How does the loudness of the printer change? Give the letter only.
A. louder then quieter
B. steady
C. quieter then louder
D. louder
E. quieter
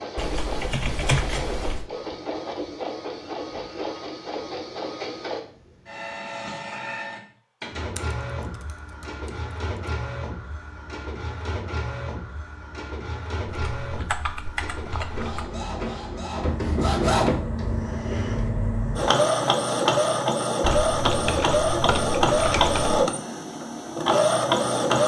D.